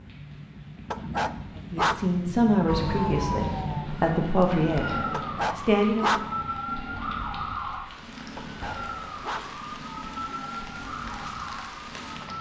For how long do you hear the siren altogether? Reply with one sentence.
You can hear the siren for 10 seconds altogether.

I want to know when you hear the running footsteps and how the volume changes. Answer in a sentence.
You can't hear the running footsteps here.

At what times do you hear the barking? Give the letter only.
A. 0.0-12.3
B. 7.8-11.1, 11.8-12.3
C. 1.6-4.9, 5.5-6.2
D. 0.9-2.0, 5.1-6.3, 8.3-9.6
D.